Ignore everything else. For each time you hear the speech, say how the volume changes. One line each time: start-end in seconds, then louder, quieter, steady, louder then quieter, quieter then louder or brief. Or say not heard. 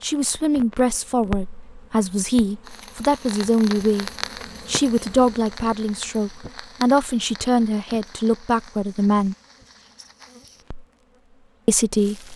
0.0-9.3 steady
11.7-12.3 brief.